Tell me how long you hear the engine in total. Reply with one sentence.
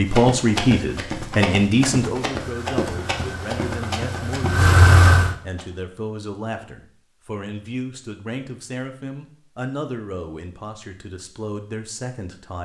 The engine can be heard for 3 seconds in total.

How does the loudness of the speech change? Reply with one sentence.
The loudness of the speech goes down.